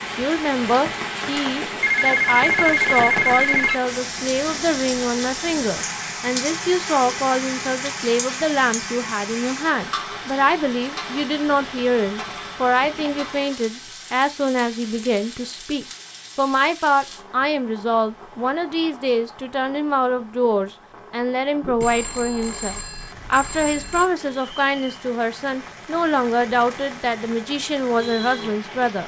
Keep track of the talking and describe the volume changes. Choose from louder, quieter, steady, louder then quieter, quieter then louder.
steady.